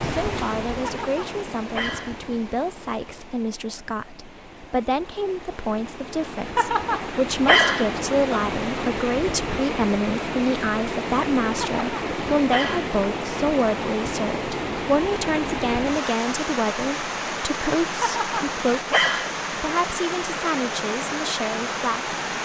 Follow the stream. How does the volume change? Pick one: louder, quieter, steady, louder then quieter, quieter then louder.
louder.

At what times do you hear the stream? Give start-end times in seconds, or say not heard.
0.0-22.4.